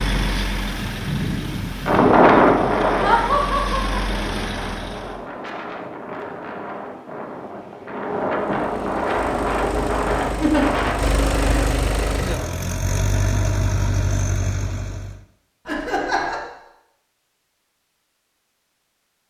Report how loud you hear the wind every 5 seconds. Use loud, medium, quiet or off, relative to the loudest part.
loud, medium, medium, off.